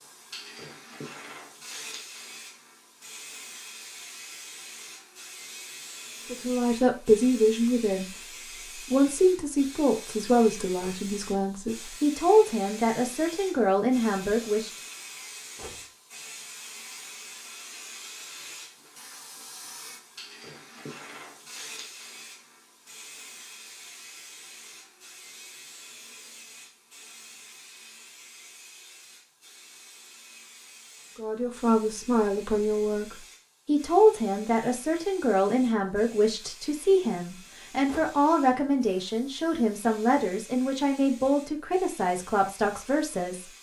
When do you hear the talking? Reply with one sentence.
You can hear the talking from 6.3 to 8.1 s, from 8.8 to 14.7 s and from 31.1 to 43.5 s.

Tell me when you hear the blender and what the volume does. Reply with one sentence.
You can't hear the blender here.